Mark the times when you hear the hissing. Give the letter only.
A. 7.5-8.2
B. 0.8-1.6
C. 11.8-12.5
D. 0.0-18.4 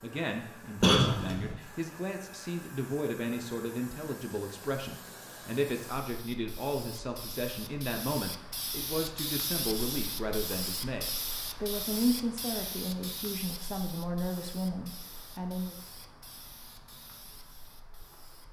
D.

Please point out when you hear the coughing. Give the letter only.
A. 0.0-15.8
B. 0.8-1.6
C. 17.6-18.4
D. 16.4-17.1
B.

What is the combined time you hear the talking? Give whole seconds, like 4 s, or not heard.
16 s.